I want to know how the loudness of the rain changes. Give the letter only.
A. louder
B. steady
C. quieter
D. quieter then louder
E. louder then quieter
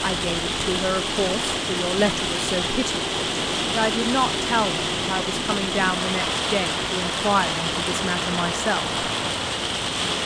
B.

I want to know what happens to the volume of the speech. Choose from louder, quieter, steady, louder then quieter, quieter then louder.
steady.